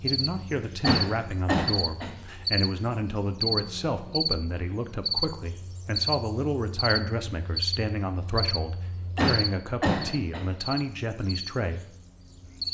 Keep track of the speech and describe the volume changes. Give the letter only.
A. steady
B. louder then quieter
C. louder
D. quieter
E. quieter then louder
A.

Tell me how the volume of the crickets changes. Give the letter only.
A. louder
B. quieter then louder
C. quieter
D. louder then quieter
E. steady
C.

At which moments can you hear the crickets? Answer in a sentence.
The crickets can be heard from 0.0 to 12.6 s.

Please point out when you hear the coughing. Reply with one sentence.
The coughing can be heard from 0.8 to 2.1 s and from 9.2 to 10.4 s.